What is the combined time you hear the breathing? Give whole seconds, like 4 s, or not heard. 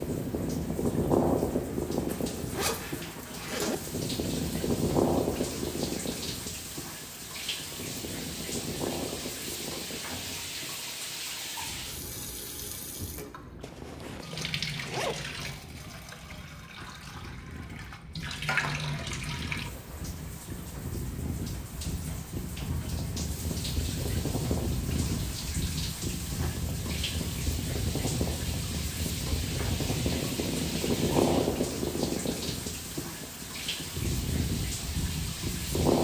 not heard.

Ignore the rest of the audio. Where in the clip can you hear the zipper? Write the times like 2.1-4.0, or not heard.
2.0-3.8, 13.6-15.6, 26.2-26.8.